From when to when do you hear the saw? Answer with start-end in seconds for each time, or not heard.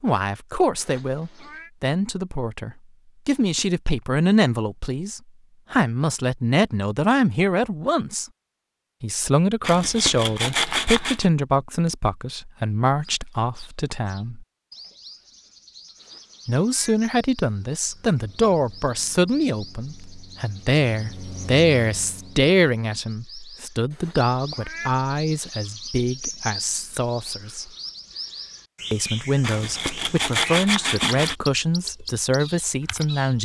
9.6-11.3, 29.4-31.4.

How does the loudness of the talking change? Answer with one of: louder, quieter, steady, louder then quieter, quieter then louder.
steady.